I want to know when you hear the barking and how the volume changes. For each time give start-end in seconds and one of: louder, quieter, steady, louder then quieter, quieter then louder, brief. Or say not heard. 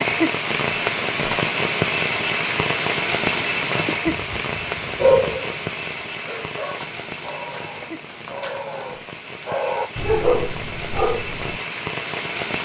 3.7-11.6 quieter then louder.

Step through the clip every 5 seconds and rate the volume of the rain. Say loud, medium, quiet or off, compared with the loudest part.
loud, medium, medium.